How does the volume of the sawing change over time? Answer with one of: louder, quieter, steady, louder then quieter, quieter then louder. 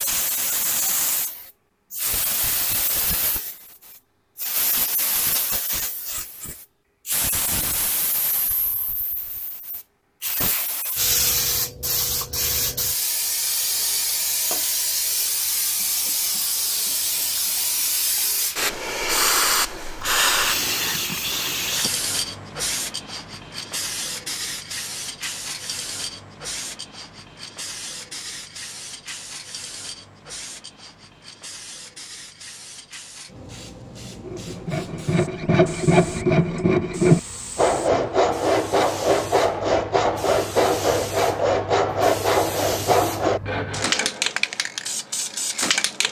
steady.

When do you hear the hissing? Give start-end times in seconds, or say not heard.
0.0-46.0.